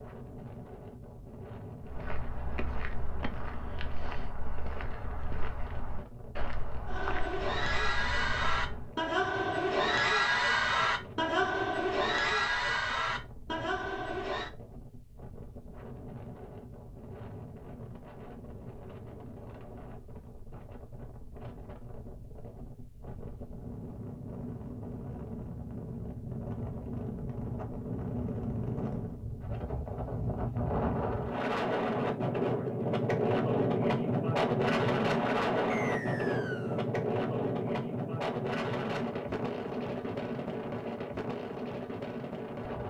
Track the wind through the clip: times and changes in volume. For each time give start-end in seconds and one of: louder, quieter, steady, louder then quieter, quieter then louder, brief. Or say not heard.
0.0-42.8 louder.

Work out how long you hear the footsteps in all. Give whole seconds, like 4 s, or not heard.
7 s.